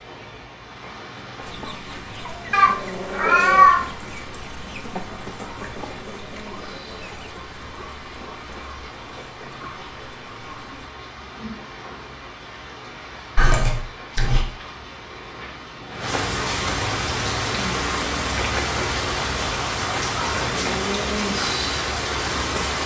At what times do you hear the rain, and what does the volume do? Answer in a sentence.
You can hear the rain from 0.0 to 22.8 s, getting louder.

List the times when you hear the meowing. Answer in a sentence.
The meowing can be heard from 2.5 to 3.9 s and from 13.3 to 14.4 s.